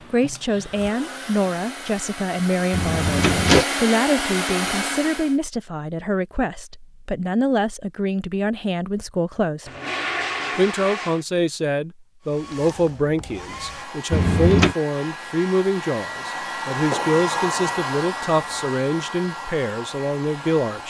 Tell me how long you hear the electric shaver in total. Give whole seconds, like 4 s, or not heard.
not heard.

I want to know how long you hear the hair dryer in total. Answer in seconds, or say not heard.
14 s.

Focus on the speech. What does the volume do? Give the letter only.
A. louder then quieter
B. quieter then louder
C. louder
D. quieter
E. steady
E.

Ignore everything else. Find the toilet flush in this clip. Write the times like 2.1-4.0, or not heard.
2.7-3.6, 9.7-11.2, 14.1-14.8.